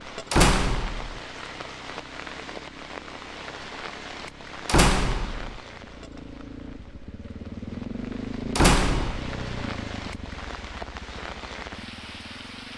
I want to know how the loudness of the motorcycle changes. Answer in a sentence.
The volume of the motorcycle goes up, then down.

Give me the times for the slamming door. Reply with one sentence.
You can hear the slamming door from 0.3 to 1.2 s, from 4.7 to 5.6 s and from 8.6 to 9.2 s.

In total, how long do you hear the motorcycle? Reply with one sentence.
You can hear the motorcycle for 13 seconds altogether.